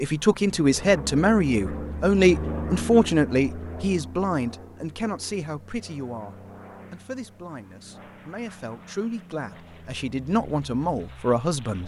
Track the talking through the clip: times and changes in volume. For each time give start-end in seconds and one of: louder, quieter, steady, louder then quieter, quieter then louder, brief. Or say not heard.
0.0-11.8 quieter then louder.